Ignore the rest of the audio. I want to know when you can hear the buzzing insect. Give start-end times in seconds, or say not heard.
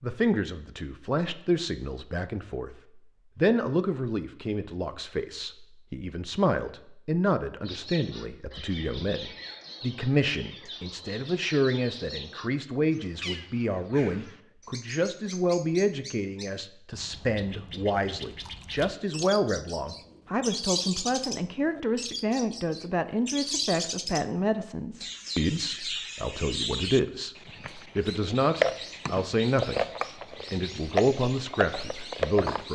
not heard.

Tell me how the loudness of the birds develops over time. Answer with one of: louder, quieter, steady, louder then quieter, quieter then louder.
louder.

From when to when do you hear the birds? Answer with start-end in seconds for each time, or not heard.
7.7-32.7.